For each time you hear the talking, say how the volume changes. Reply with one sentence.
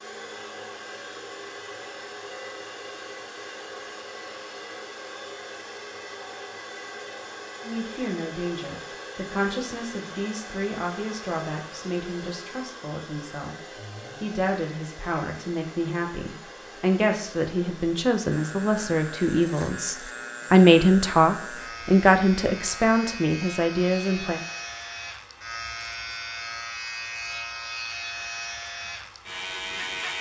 The talking can be heard from 7.6 to 24.4 s, getting louder.